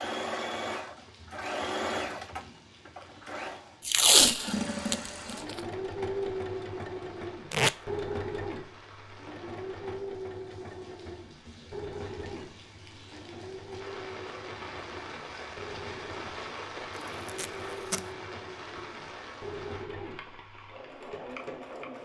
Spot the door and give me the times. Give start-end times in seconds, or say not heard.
not heard.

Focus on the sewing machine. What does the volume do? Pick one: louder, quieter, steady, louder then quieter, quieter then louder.
quieter.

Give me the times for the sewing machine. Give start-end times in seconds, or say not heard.
0.0-22.0.